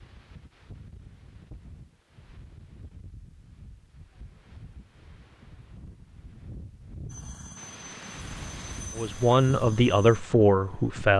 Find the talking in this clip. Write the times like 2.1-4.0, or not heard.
8.9-11.1.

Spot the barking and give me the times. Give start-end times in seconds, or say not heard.
not heard.